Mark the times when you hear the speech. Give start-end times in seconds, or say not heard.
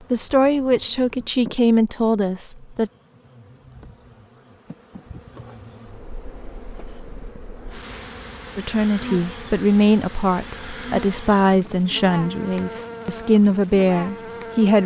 0.1-2.9, 8.6-14.8.